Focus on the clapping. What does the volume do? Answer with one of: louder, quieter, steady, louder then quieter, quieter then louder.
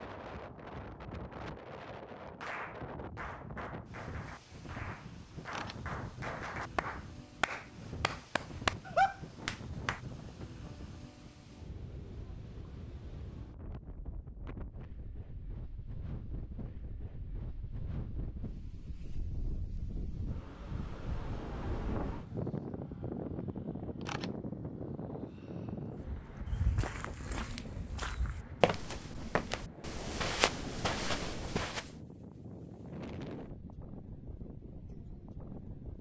louder.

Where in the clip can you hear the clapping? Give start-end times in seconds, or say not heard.
2.4-10.0.